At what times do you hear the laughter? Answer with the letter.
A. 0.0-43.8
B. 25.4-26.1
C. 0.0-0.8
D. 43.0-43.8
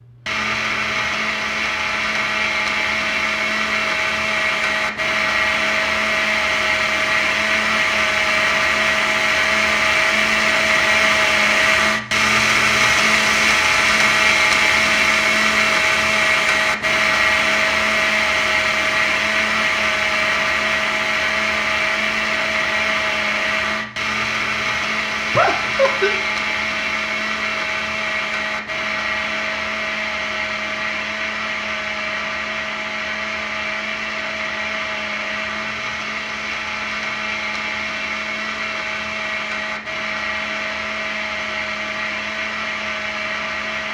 B.